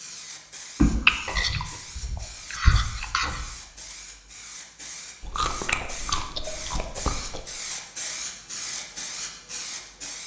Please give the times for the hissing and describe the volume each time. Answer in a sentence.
The hissing can be heard from 0.0 to 10.2 s, getting louder.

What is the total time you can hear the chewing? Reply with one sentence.
The chewing can be heard for 5 seconds in total.